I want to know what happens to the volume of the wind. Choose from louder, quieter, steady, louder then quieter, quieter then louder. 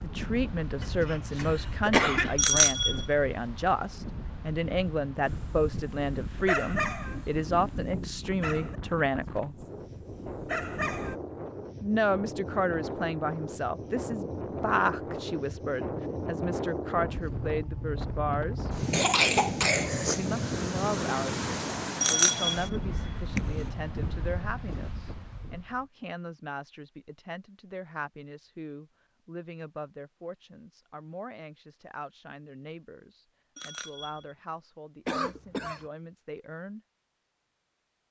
louder.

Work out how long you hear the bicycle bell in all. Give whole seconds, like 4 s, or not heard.
3 s.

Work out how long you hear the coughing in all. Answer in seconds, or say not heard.
4 s.